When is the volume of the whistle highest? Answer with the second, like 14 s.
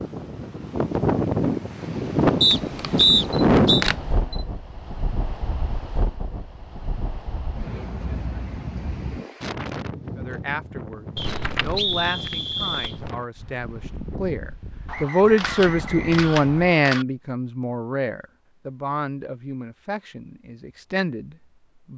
3 s.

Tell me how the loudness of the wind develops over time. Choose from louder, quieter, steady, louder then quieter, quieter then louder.
quieter.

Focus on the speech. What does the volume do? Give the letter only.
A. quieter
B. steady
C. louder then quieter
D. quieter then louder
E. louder
C.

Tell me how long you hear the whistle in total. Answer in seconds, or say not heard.
5 s.